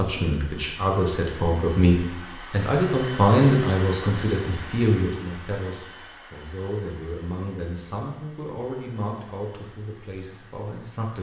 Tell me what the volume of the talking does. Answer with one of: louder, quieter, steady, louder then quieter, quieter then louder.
quieter.